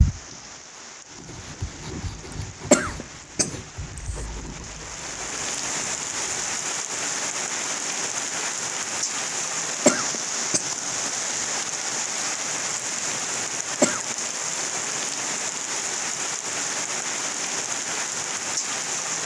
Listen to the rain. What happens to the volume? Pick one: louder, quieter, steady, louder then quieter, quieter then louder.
louder.